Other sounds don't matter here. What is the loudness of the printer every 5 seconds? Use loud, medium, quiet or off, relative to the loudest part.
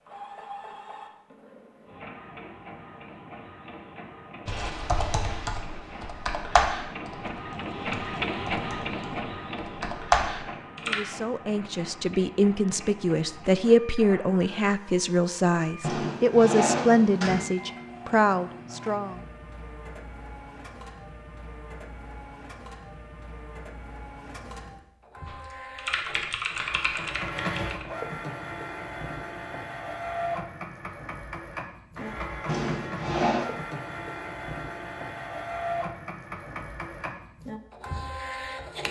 medium, loud, medium, medium, medium, loud, loud, loud.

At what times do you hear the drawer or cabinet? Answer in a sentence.
The drawer or cabinet can be heard from 15.8 to 17.5 s and from 32.5 to 33.5 s.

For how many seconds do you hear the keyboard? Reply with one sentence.
You can hear the keyboard for 9 seconds altogether.